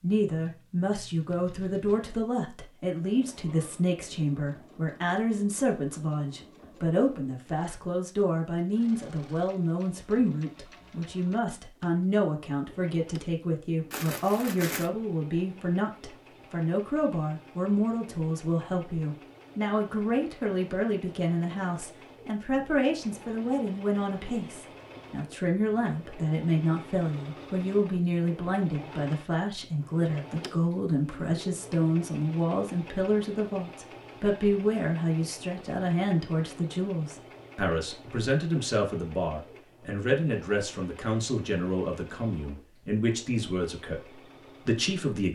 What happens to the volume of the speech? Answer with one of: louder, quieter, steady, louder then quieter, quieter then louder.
steady.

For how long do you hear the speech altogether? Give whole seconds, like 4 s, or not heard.
45 s.